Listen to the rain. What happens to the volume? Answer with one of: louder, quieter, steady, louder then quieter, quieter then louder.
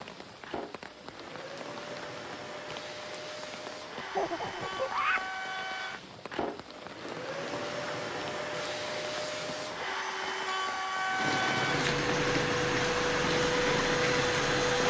louder.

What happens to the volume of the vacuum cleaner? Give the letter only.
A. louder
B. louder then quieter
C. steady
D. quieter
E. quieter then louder
A.